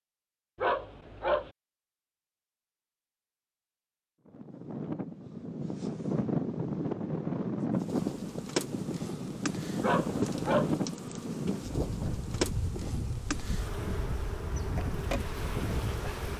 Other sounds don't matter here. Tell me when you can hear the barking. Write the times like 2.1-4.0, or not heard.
0.6-1.5, 9.8-10.8.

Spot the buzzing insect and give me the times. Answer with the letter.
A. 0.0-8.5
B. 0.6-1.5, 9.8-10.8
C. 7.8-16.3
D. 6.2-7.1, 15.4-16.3
C.